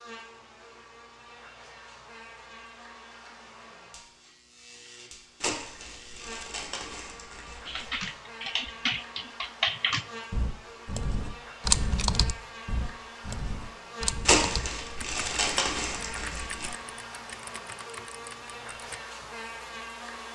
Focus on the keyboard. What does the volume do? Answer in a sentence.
The volume of the keyboard goes down.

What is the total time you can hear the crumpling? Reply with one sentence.
The crumpling can be heard for 5 seconds in total.